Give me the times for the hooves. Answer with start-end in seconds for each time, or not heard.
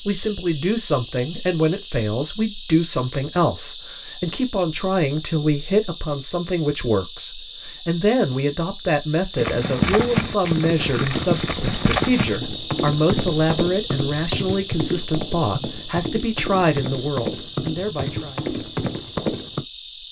9.3-19.6.